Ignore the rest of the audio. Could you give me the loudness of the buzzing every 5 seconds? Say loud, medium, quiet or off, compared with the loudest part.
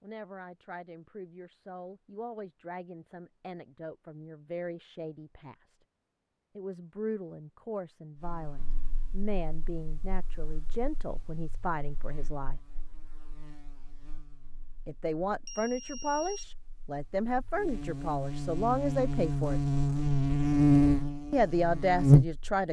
off, quiet, quiet, medium, loud.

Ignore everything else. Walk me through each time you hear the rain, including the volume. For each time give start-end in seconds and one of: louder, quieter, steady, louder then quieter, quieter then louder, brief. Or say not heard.
not heard.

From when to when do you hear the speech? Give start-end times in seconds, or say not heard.
0.0-5.8, 6.5-12.6, 14.8-19.6, 21.3-22.6.